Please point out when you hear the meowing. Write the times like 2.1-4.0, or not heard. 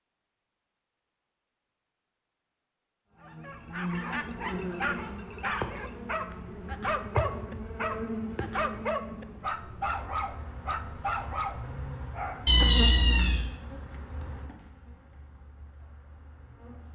12.4-13.4.